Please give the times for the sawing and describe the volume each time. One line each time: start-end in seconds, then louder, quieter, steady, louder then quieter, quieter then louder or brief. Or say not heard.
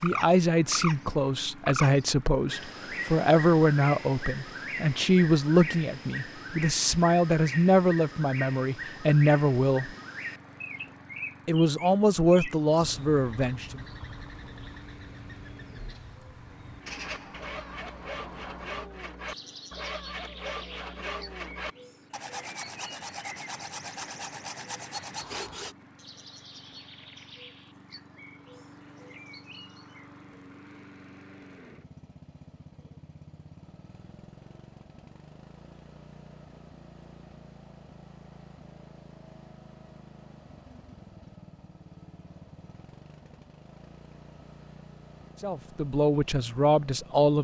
16.8-25.8 steady.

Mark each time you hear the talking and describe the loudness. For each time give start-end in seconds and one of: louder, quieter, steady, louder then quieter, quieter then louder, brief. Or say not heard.
0.0-9.9 steady
11.4-13.8 brief
45.4-47.3 brief.